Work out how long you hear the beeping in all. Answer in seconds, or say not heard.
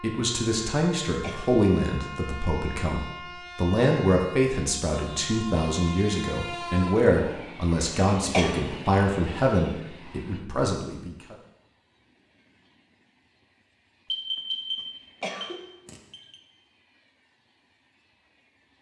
2 s.